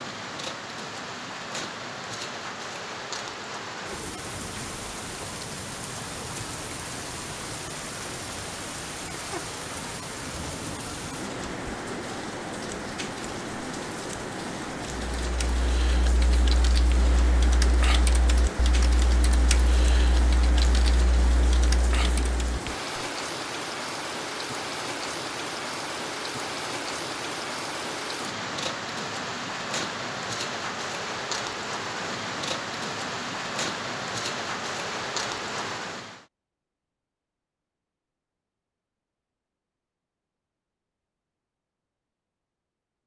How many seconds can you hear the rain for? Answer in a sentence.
You can hear the rain for 36 seconds altogether.